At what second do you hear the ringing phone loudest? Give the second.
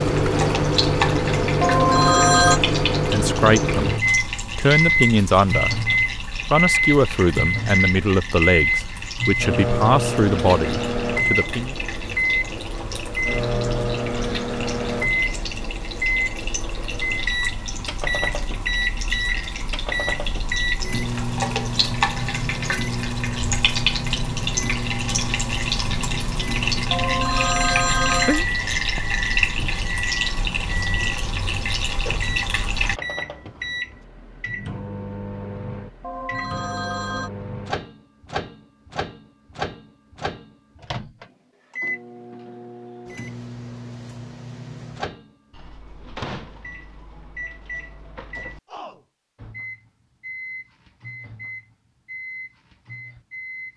2 s.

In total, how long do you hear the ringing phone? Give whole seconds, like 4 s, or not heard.
4 s.